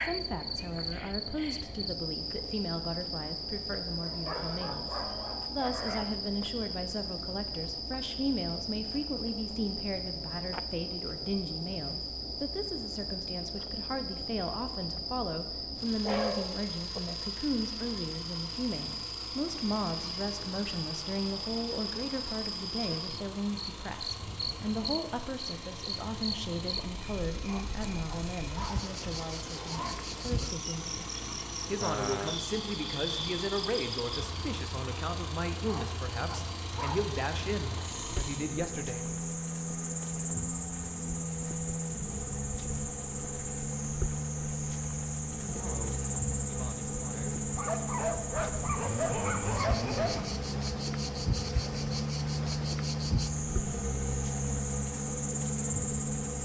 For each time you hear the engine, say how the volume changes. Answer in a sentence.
You can hear the engine from 0.0 to 56.4 s, getting louder.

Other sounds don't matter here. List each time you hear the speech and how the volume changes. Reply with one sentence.
You can hear the speech from 0.0 to 4.9 s, at a steady volume; from 5.5 to 39.0 s, at a steady volume; and briefly from 45.5 to 47.4 s.